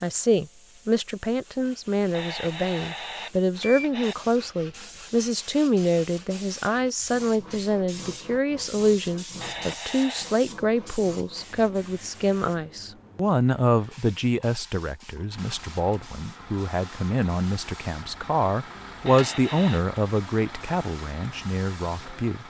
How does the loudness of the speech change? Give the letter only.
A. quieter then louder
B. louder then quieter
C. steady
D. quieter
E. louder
C.